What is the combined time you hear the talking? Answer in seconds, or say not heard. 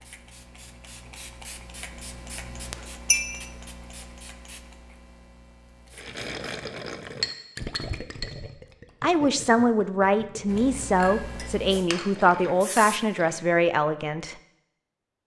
5 s.